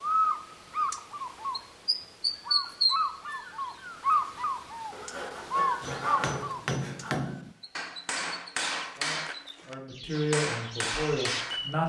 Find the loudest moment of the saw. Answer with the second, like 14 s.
6 s.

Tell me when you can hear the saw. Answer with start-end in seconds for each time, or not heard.
4.9-7.3.